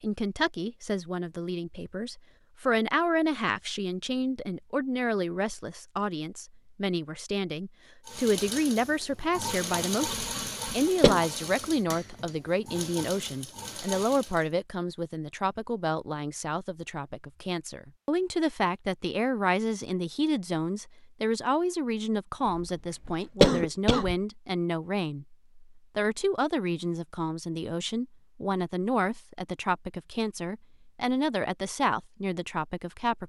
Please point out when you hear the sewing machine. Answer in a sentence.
You can hear the sewing machine from 8.1 to 14.6 s.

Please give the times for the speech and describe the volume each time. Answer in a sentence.
The speech can be heard from 0.0 to 33.2 s, at a steady volume.